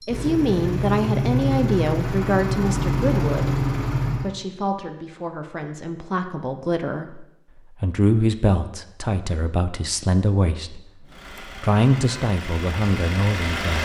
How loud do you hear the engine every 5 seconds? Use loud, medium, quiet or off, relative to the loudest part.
loud, off, medium.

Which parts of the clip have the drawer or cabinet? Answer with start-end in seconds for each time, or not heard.
not heard.